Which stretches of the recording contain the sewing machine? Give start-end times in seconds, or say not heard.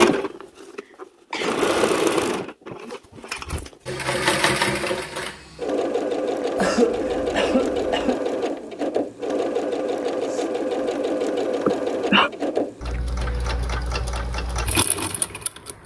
0.0-15.8.